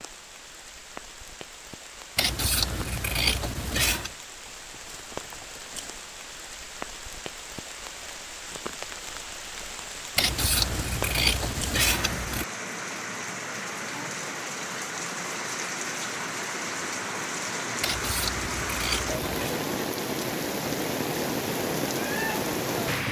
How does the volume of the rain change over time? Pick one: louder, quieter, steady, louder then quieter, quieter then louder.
louder.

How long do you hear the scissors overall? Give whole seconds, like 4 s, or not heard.
6 s.